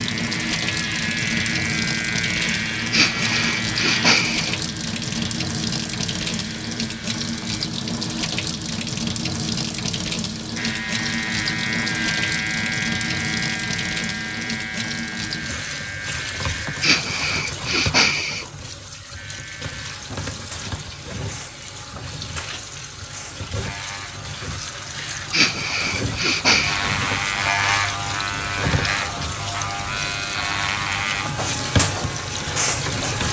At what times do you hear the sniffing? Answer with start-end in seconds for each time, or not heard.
2.8-4.6, 16.6-18.5, 24.9-26.9.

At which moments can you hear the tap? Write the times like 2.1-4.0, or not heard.
0.0-33.2.